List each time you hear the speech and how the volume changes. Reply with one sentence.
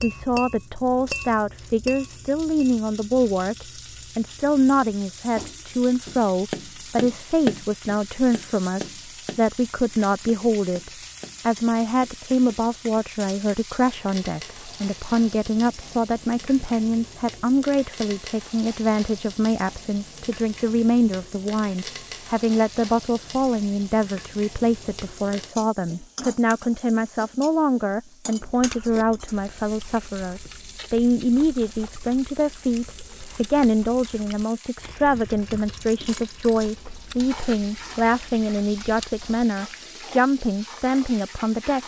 You can hear the speech from 0.0 to 41.8 s, at a steady volume.